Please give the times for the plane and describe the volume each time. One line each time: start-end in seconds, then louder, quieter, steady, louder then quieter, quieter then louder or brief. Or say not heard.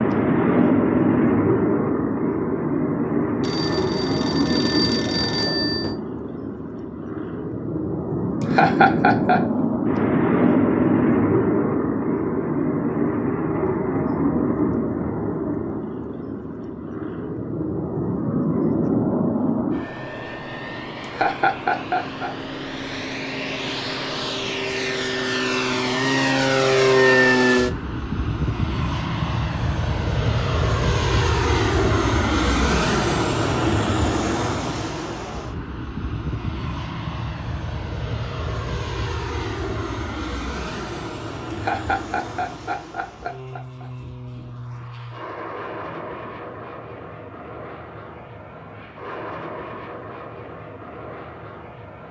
0.0-52.0 quieter.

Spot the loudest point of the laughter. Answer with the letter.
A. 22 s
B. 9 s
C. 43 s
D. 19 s
B.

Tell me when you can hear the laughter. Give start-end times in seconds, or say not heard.
8.4-9.4, 21.0-22.3, 41.5-43.9.